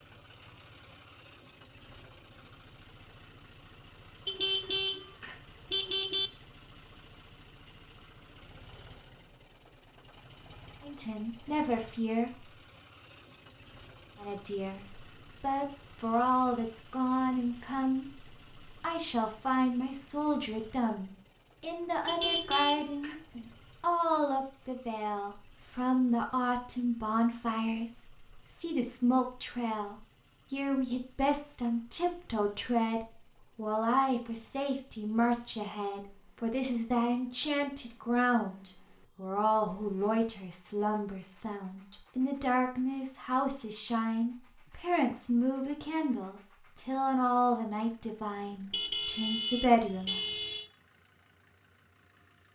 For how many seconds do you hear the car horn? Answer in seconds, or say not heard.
5 s.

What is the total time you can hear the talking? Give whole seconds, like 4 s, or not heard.
37 s.